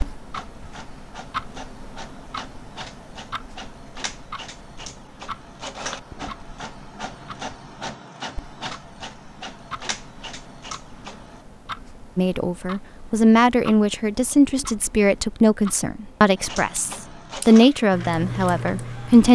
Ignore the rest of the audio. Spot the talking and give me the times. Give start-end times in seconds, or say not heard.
12.2-19.3.